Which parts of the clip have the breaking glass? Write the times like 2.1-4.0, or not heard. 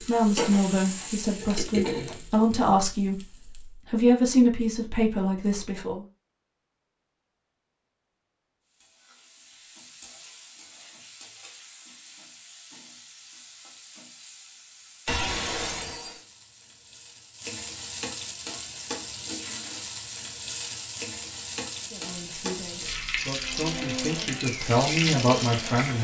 1.0-2.1, 15.1-16.2.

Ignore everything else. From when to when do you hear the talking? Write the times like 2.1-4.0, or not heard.
0.0-6.0, 21.9-25.9.